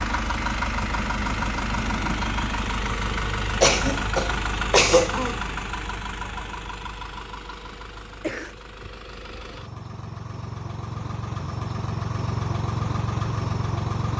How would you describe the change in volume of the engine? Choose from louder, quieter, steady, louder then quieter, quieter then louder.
quieter then louder.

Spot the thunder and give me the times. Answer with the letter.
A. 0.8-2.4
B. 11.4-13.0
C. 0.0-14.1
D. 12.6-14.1
A.